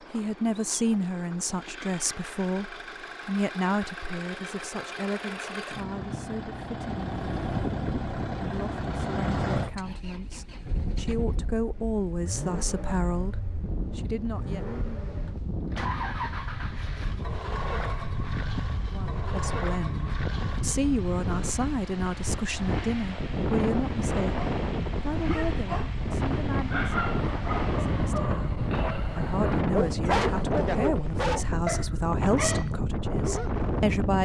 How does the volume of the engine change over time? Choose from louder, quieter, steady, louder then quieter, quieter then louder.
louder then quieter.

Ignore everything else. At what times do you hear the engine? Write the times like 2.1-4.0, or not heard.
0.0-28.3.